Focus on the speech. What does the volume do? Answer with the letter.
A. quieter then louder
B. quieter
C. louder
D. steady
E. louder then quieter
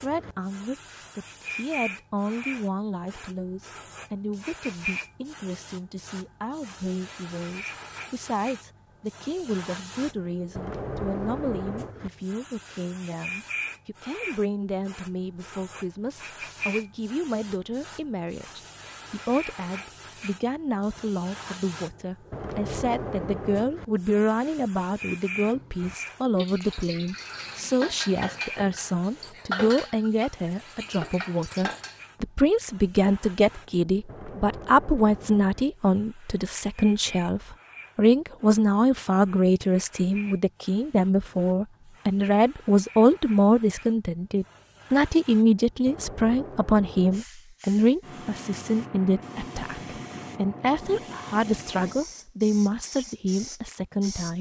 C.